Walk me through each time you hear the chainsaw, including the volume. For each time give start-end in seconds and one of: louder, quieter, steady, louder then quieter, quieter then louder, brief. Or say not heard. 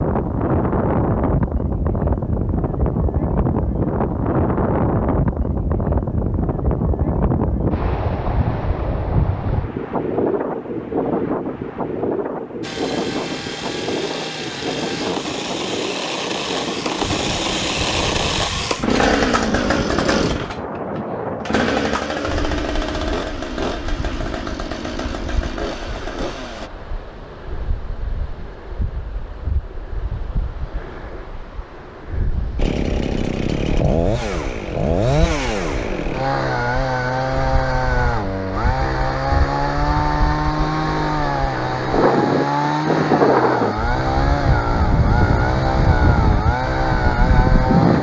12.6-26.7 louder then quieter
32.5-47.9 steady.